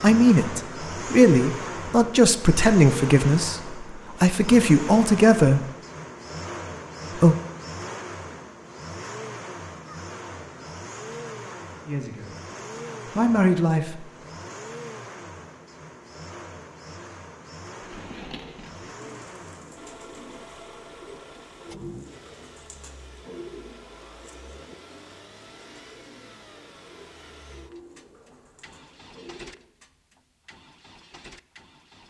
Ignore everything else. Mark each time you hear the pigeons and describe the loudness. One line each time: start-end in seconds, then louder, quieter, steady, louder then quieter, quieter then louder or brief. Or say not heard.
17.8-29.6 quieter.